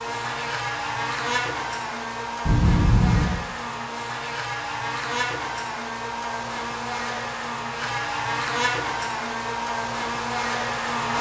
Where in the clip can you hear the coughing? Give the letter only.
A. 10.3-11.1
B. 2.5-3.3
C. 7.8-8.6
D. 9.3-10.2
B.